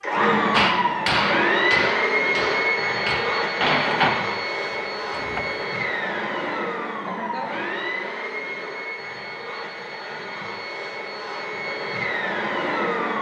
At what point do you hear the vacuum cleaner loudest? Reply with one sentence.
The volume of the vacuum cleaner peaks at 2 seconds.